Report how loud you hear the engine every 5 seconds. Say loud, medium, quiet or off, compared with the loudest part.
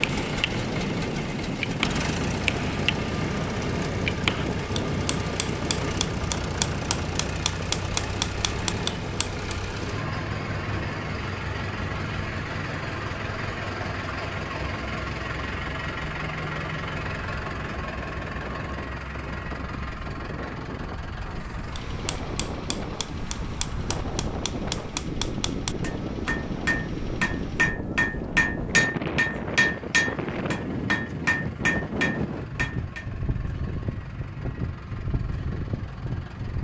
loud, loud, loud, loud, medium, quiet, quiet, quiet.